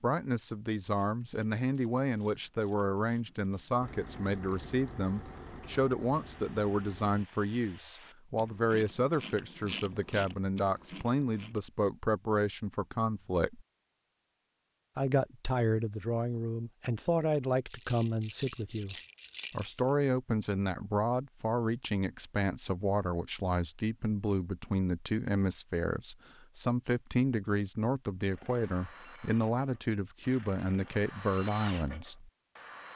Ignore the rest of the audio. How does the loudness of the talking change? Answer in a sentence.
The volume of the talking stays about the same.